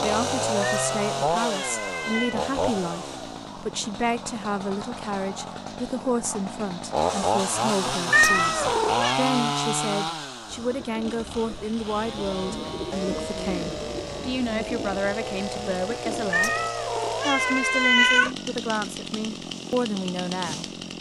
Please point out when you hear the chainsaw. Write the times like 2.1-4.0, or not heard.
0.0-20.9.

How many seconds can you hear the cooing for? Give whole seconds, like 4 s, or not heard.
6 s.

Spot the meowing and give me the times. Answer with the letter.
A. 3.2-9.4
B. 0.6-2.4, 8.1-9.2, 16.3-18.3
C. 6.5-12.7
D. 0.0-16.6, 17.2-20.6
B.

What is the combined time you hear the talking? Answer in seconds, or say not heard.
20 s.